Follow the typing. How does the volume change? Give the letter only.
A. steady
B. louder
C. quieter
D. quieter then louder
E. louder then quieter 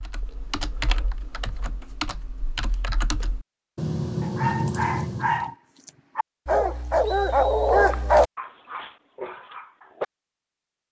B.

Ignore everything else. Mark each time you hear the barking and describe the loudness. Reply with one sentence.
You can hear the barking from 4.2 to 10.1 s, getting louder then quieter.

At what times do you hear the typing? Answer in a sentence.
You can hear the typing from 0.0 to 5.5 s.